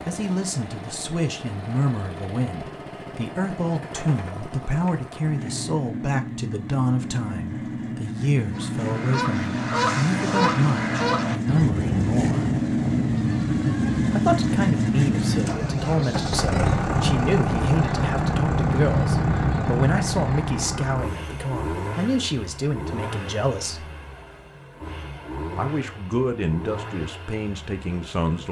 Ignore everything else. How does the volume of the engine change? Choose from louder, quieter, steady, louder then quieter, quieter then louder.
louder then quieter.